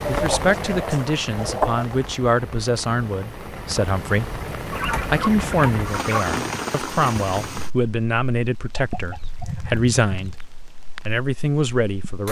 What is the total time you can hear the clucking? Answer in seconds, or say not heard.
5 s.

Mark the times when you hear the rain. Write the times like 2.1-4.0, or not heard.
0.0-12.2.